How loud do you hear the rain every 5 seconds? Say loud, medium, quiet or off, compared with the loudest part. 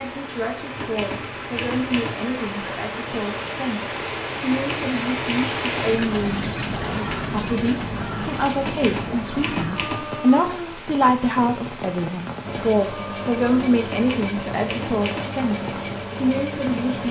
loud, loud, medium, medium.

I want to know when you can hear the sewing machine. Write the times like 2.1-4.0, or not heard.
12.4-17.0.